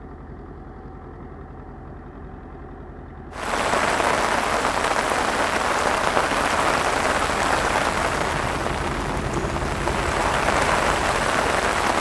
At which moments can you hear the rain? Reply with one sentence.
The rain can be heard from 3.3 to 11.9 s.